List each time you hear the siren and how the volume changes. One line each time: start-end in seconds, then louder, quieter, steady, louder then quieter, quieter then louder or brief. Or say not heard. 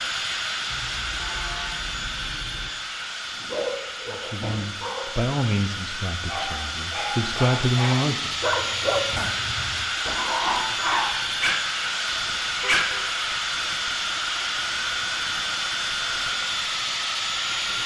not heard.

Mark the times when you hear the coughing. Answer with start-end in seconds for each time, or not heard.
not heard.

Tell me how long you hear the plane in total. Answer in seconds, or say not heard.
18 s.